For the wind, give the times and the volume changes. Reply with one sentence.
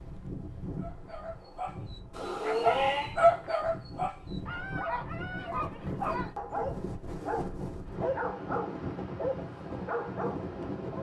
You can hear the wind from 0.0 to 10.9 s, getting louder.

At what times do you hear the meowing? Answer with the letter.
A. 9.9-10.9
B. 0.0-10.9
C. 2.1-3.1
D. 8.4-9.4
C.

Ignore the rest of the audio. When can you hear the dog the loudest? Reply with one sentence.
The volume of the dog peaks at 3 seconds.